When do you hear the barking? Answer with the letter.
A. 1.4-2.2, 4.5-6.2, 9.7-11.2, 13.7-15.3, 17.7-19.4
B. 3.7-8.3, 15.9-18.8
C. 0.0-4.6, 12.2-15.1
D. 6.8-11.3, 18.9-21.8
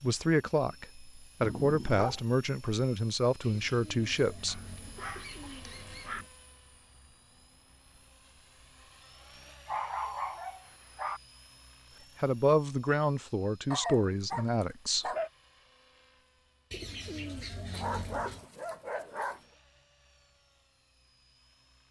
A.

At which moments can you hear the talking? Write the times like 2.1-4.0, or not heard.
0.0-4.6, 12.2-15.1.